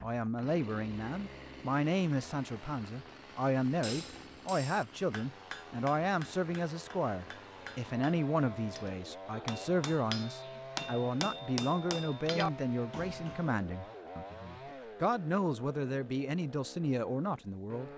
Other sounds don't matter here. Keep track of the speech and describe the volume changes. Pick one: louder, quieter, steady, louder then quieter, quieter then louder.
steady.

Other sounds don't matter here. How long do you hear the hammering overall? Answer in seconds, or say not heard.
10 s.